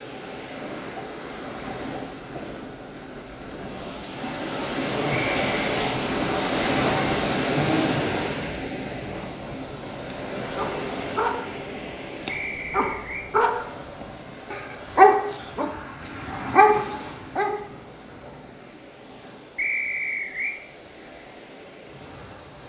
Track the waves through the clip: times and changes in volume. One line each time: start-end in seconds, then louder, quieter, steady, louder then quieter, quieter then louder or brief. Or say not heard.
0.0-22.6 louder then quieter.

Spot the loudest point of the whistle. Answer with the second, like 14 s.
20 s.